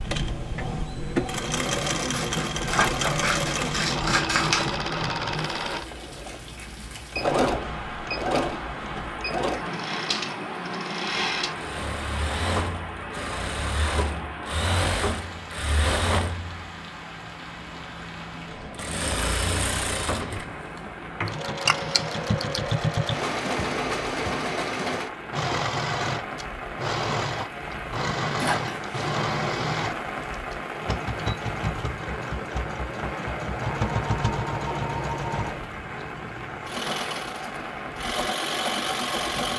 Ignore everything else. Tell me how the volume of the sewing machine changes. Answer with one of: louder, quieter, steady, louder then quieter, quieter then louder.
steady.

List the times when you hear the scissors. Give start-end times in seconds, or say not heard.
2.1-4.8.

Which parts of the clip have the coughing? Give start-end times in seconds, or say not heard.
28.4-29.1.